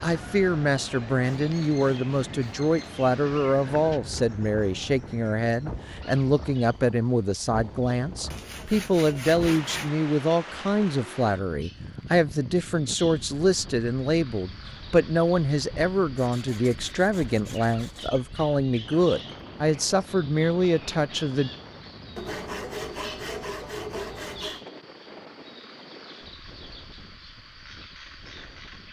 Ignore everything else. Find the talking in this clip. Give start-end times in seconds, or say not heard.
0.0-21.5.